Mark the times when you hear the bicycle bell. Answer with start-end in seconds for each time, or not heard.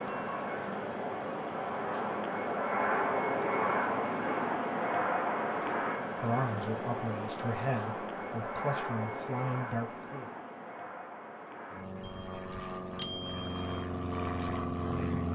0.1-0.6, 12.0-13.7.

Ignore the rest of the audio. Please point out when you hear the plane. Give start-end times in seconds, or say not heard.
0.0-15.3.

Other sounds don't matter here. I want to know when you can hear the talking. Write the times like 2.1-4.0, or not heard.
5.5-10.3.